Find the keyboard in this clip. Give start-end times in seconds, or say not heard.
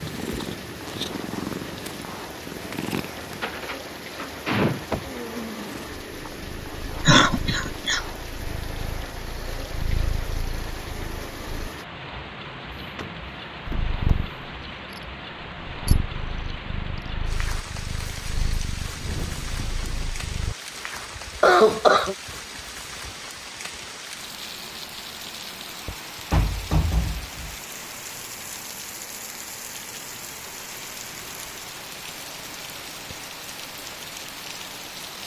not heard.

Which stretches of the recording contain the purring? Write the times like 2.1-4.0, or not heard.
0.0-11.7, 13.7-20.6.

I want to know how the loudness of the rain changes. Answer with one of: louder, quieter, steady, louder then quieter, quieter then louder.
steady.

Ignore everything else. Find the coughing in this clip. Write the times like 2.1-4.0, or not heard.
7.0-8.0, 21.4-22.1.